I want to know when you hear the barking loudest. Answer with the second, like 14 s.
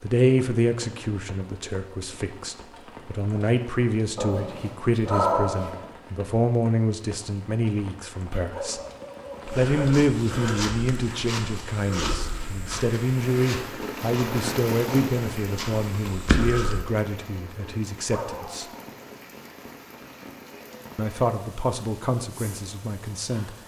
5 s.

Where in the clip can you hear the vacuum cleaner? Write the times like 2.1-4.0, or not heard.
not heard.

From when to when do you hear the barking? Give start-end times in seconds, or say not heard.
4.2-5.8, 8.3-9.9, 17.6-18.9.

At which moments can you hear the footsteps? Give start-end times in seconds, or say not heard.
9.4-16.9.